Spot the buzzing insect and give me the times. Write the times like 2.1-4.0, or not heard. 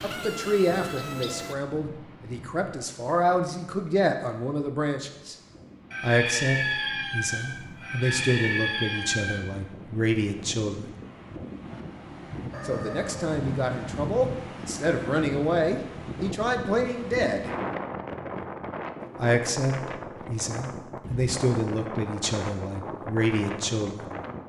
0.0-1.6.